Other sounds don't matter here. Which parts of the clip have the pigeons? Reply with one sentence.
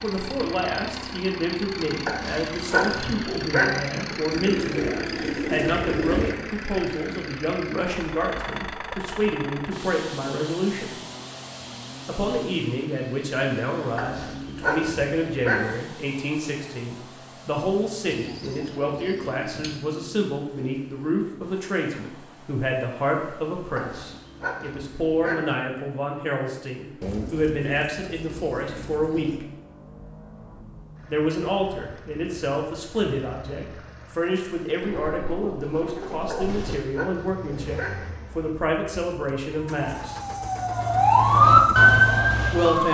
The pigeons can be heard from 4.3 to 6.3 s, from 18.1 to 19.8 s, from 27.0 to 29.4 s and from 34.8 to 36.8 s.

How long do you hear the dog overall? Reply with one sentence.
You can hear the dog for 7 seconds altogether.